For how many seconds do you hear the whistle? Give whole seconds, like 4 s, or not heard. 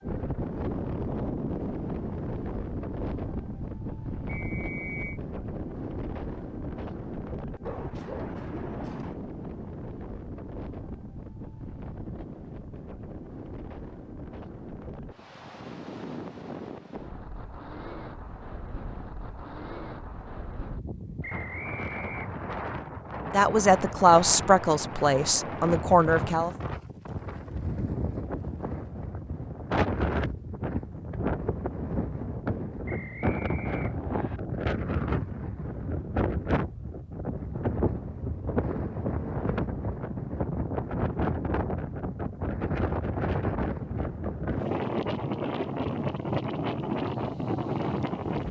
4 s.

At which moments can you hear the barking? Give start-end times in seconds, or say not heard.
7.7-9.2.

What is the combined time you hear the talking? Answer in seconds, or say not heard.
3 s.